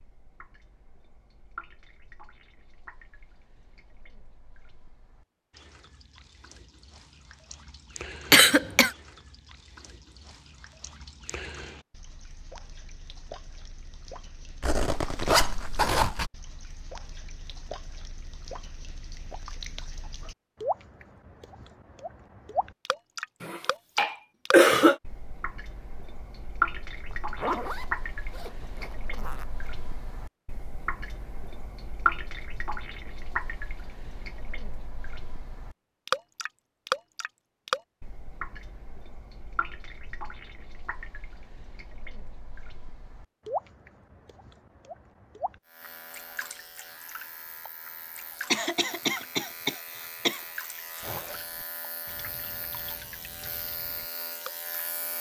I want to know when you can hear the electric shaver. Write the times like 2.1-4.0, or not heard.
45.6-55.1.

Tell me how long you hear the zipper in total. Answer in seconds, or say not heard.
5 s.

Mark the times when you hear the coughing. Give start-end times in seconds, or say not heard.
8.3-8.9, 23.4-24.9, 48.5-50.4.